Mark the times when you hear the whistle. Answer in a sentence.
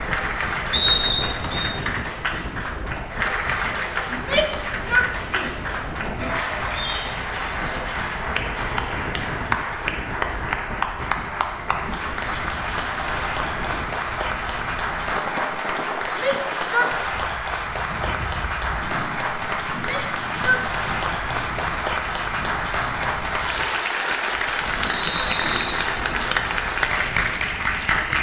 The whistle can be heard from 0.7 to 1.7 s and from 24.9 to 25.9 s.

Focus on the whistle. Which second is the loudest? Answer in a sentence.
The loudest moment of the whistle is at 1 second.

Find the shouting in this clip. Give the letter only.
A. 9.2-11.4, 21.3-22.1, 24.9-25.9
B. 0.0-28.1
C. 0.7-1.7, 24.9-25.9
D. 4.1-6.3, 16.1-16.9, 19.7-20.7
D.